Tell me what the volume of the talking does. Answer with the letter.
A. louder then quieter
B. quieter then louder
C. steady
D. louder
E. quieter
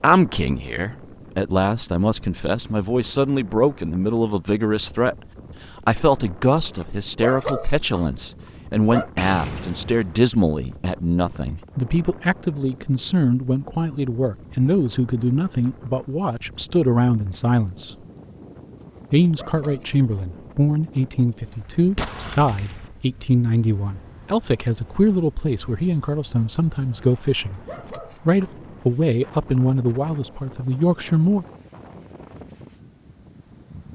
C.